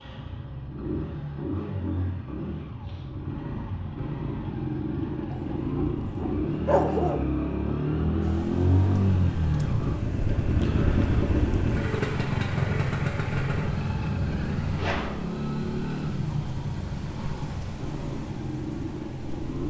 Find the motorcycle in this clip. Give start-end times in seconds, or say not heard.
0.0-19.6.